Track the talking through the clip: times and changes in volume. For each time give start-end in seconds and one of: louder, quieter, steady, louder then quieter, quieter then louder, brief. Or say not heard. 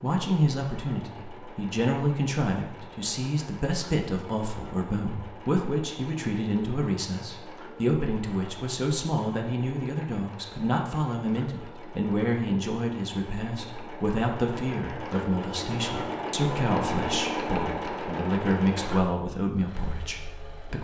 0.0-20.7 steady.